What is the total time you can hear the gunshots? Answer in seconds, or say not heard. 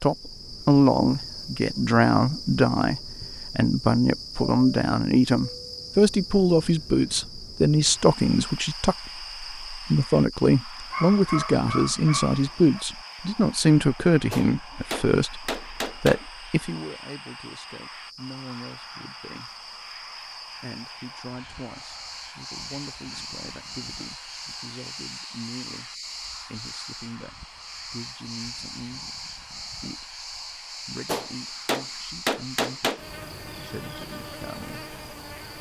4 s.